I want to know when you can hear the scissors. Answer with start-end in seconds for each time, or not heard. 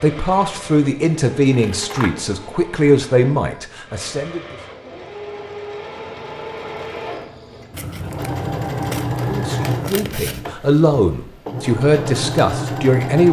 1.5-2.2, 7.7-10.4.